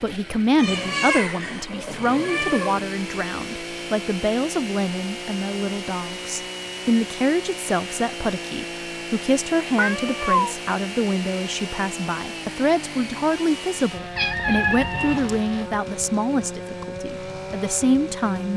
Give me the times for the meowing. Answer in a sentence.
You can hear the meowing from 0.6 to 2.9 s, from 9.8 to 10.6 s and from 14.2 to 15.4 s.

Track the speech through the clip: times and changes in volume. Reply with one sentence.
The speech can be heard from 0.0 to 18.5 s, at a steady volume.